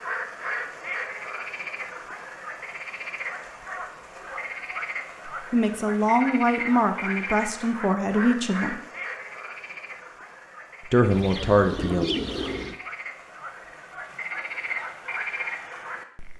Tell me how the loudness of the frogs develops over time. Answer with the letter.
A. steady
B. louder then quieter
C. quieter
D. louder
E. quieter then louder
E.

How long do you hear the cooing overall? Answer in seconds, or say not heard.
2 s.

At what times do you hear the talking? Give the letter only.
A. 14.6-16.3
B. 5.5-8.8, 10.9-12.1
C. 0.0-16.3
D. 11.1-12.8
B.